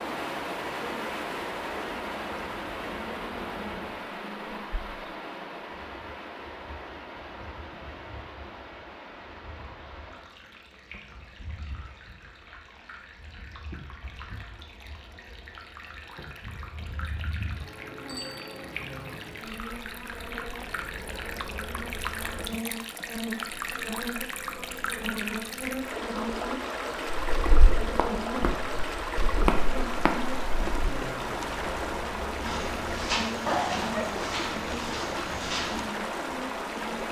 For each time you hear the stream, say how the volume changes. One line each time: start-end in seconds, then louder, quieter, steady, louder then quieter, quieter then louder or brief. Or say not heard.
0.0-37.0 quieter then louder.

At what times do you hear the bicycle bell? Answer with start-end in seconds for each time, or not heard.
18.1-18.6.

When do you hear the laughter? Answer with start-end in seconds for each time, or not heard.
33.5-34.2.